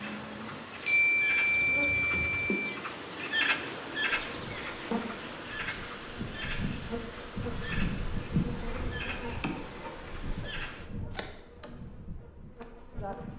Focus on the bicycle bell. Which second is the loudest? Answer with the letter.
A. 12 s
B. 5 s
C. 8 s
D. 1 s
D.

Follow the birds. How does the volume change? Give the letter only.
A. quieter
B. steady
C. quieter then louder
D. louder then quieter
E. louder
D.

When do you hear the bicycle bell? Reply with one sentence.
The bicycle bell can be heard from 0.8 to 2.7 s.